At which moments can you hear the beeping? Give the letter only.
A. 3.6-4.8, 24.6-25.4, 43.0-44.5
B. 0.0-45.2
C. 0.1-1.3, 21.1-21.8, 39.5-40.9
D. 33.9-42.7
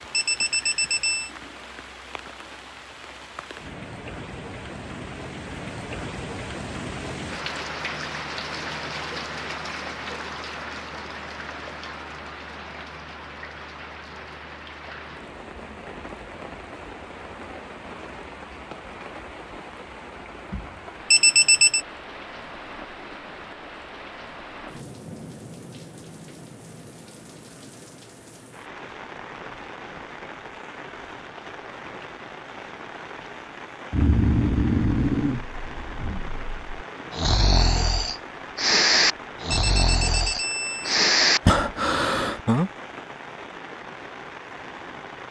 C.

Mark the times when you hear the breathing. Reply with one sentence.
The breathing can be heard from 33.9 to 42.7 s.